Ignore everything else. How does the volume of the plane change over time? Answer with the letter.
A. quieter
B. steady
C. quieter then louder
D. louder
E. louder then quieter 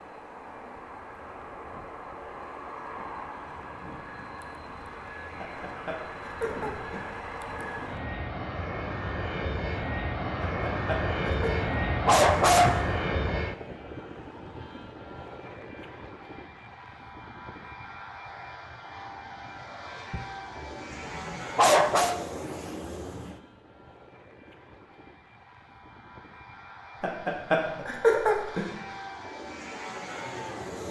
E.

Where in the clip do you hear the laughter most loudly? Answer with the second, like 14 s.
28 s.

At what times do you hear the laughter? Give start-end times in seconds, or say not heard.
5.3-7.1, 10.4-11.6, 27.0-28.7.